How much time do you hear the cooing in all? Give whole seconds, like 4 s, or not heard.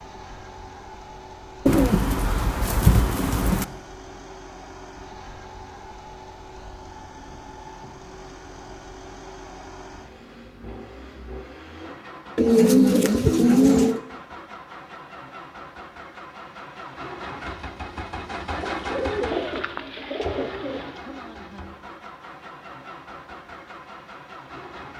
6 s.